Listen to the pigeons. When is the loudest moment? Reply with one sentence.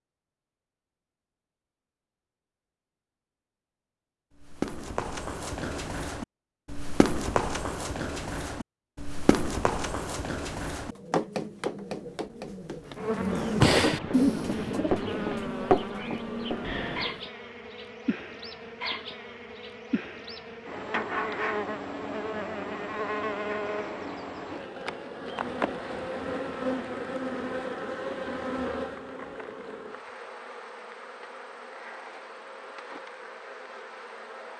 The loudest moment of the pigeons is at 14 seconds.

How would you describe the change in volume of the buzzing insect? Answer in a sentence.
The volume of the buzzing insect goes down.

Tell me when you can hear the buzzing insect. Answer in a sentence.
You can hear the buzzing insect from 12.9 to 34.5 s.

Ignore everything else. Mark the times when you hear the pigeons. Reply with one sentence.
You can hear the pigeons from 10.8 to 17.2 s.